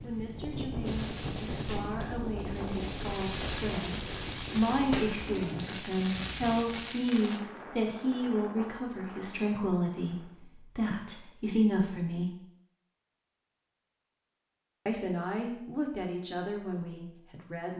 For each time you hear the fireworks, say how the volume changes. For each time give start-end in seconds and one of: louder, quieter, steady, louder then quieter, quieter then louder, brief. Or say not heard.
0.8-7.4 louder.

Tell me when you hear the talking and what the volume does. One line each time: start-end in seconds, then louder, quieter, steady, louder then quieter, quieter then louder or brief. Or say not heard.
0.0-12.3 louder
14.8-17.7 brief.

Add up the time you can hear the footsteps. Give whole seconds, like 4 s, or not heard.
not heard.